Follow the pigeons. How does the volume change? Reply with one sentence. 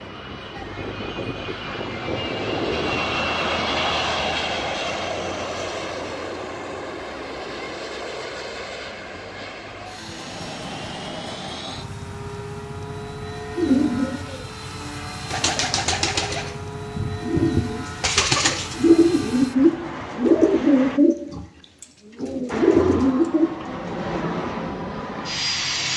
The volume of the pigeons goes up.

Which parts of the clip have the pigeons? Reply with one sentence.
You can hear the pigeons from 13.6 to 24.1 s.